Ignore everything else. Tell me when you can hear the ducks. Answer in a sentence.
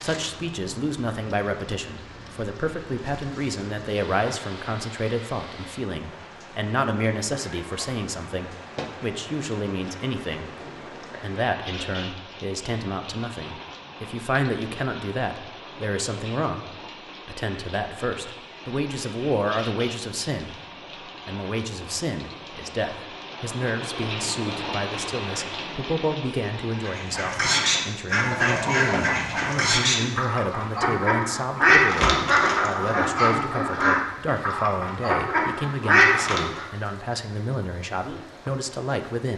The ducks can be heard from 26.9 to 36.6 s.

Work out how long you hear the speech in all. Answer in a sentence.
The speech can be heard for 38 seconds in total.